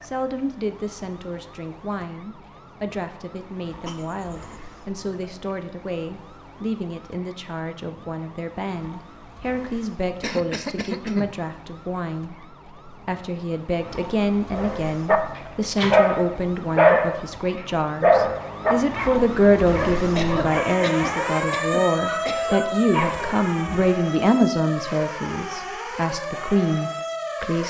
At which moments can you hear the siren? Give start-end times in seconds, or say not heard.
0.0-27.6.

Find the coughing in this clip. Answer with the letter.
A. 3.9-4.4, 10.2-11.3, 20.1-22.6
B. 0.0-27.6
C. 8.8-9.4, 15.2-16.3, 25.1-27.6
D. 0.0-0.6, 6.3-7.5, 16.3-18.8
A.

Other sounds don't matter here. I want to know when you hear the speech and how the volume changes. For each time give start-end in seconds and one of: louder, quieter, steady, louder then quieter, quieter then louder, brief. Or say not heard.
0.0-27.6 louder.